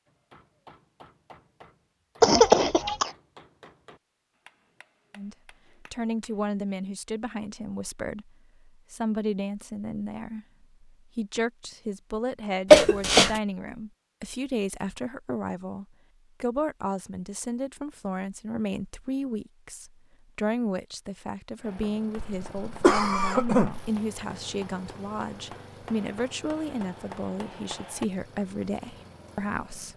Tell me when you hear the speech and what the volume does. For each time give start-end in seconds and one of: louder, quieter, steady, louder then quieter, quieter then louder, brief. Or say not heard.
5.2-29.9 steady.